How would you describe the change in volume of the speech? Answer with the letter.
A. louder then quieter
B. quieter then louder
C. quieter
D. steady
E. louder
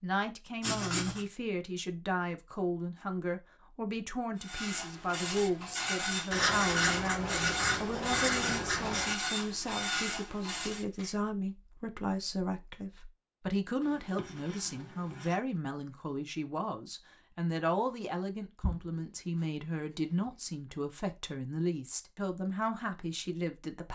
D.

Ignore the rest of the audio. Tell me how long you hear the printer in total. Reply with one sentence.
You can hear the printer for 7 seconds altogether.